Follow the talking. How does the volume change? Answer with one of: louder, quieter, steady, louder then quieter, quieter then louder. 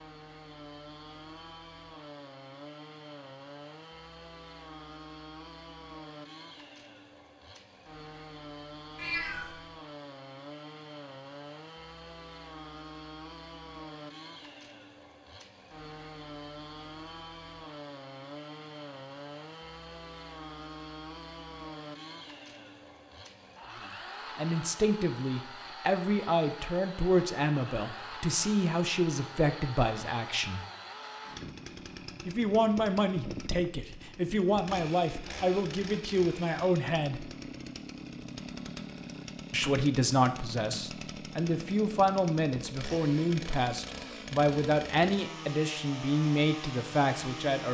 steady.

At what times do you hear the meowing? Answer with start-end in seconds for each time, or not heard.
8.9-9.6.